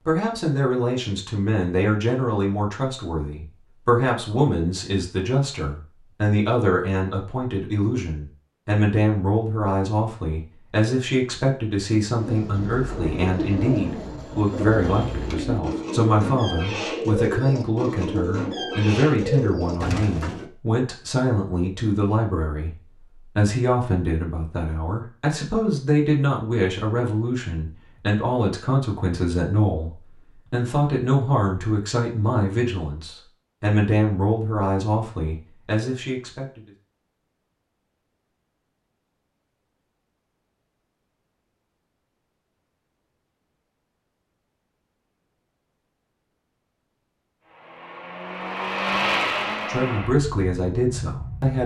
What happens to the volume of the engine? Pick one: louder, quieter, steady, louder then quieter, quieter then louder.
louder then quieter.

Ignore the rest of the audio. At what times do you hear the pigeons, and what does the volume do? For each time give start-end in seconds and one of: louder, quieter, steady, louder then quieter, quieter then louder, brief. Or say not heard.
12.2-20.4 steady.